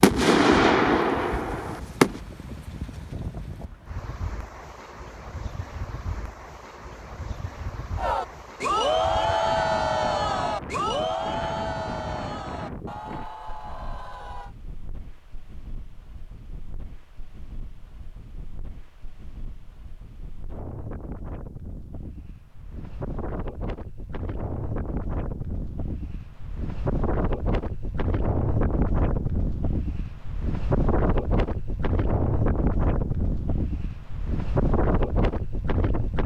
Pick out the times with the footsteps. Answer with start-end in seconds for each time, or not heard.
not heard.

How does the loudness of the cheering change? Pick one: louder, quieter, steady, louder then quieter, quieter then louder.
quieter.